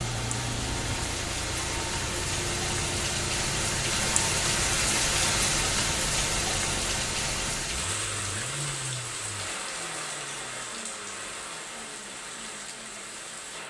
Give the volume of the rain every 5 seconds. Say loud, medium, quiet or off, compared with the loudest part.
loud, loud, medium.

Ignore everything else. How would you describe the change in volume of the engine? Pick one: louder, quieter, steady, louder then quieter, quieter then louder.
quieter.